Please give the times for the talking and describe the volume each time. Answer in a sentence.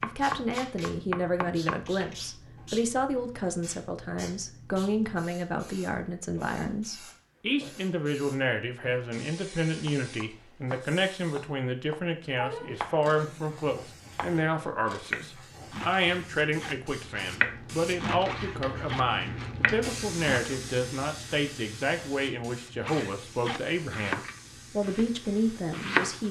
You can hear the talking from 0.0 to 26.2 s, at a steady volume.